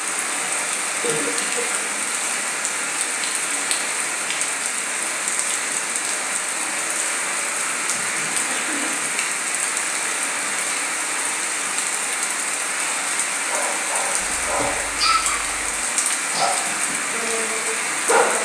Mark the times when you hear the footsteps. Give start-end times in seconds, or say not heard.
not heard.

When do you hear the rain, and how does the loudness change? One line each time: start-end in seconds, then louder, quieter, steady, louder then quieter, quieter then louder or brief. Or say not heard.
0.0-18.4 steady.